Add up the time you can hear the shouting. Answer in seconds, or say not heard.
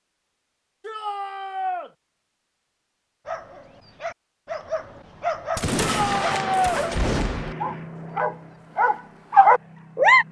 2 s.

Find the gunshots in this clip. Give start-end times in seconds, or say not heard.
5.5-7.5.